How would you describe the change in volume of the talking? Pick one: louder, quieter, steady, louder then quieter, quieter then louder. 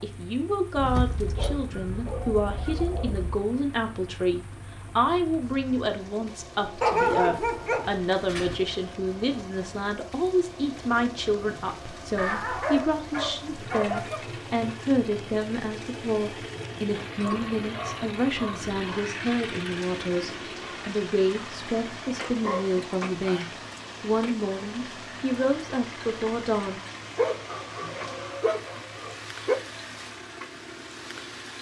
steady.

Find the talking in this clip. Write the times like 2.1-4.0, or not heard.
0.0-26.8.